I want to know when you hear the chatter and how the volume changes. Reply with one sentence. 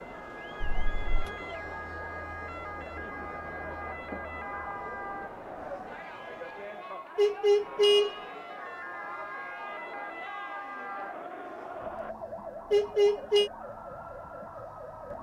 The chatter can be heard from 0.0 to 12.2 s, at a steady volume.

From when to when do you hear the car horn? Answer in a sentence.
You can hear the car horn from 0.6 to 1.3 s, from 7.2 to 8.2 s and from 12.7 to 13.5 s.